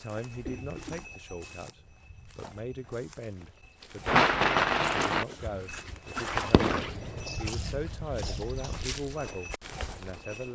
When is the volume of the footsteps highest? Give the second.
6 s.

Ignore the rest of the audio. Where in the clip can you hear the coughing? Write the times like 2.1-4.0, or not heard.
0.5-1.1, 7.2-8.8.